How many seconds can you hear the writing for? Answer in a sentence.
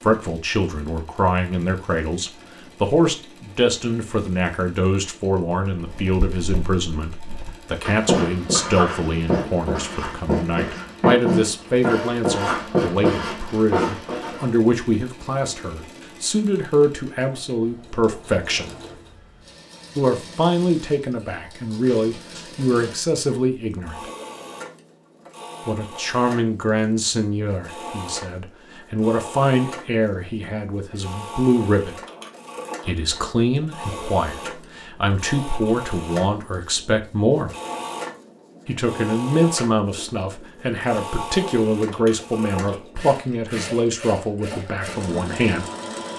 The writing can be heard for 9 seconds in total.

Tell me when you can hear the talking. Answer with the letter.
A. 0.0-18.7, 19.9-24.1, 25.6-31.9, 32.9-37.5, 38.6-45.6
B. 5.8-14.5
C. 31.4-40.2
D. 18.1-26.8
A.